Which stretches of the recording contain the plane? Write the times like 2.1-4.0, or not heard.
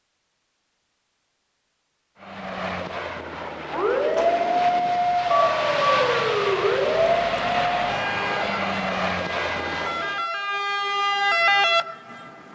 2.2-10.2.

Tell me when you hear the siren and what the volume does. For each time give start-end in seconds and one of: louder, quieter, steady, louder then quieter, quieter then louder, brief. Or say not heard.
3.7-12.5 quieter then louder.